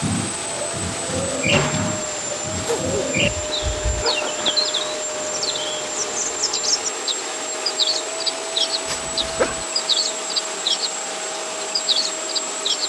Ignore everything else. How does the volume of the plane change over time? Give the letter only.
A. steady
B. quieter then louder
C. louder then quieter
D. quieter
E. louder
A.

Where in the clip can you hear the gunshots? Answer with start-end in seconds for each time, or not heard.
1.5-2.1.